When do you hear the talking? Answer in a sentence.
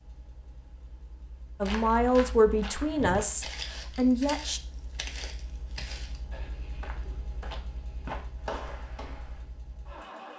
You can hear the talking from 1.6 to 4.6 s.